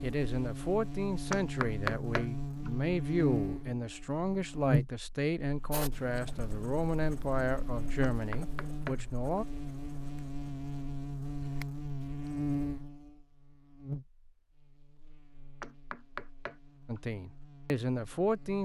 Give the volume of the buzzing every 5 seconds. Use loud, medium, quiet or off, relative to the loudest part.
loud, medium, loud, quiet.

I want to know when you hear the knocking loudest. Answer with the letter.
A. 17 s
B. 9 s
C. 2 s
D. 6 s
C.